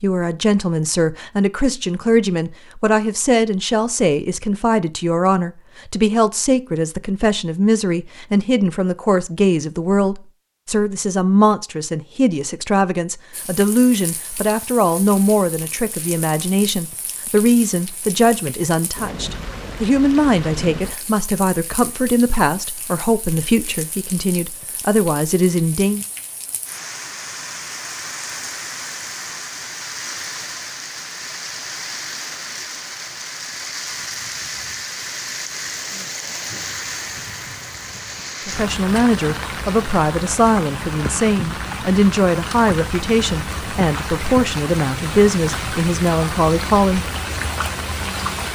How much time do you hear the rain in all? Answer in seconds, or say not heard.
35 s.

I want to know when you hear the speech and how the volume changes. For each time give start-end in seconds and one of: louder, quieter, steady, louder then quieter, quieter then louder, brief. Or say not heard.
0.0-26.1 steady
38.5-47.1 steady.